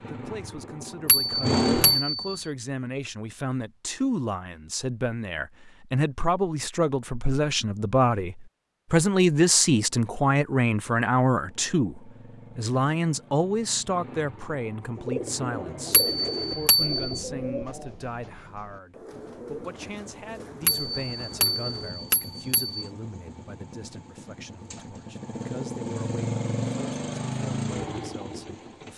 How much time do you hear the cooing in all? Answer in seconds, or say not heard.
7 s.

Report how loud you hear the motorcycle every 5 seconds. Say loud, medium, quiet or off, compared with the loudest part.
loud, off, quiet, quiet, quiet, loud.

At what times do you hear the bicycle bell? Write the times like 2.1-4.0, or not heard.
1.1-2.4, 15.9-17.2, 20.6-22.9.